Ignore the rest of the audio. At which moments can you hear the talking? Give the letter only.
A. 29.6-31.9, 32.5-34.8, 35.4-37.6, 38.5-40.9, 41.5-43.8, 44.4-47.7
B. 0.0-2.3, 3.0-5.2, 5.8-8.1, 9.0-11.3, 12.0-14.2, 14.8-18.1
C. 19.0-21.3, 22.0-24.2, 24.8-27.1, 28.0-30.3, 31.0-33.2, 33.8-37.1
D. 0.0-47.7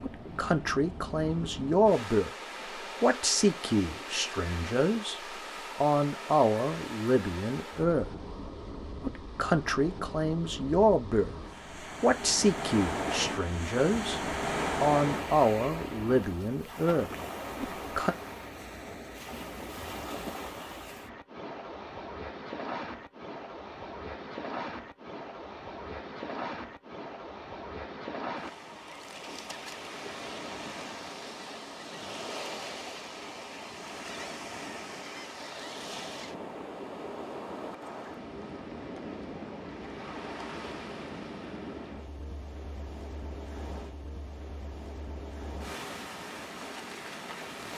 B.